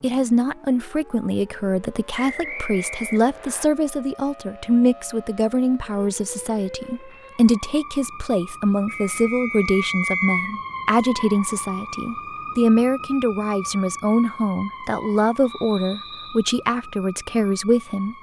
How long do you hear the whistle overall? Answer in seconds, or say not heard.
4 s.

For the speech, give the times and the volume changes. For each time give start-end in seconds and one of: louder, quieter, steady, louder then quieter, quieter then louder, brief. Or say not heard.
0.0-18.1 steady.